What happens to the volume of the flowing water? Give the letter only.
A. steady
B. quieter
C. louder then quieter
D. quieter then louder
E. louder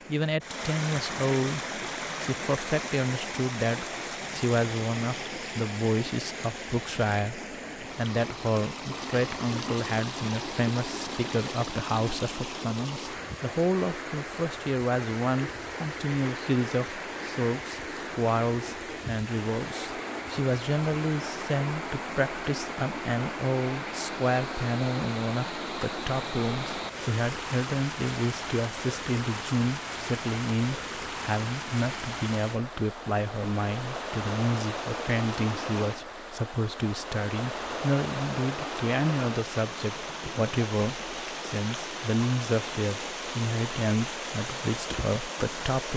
A.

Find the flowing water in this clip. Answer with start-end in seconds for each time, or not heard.
0.0-45.9.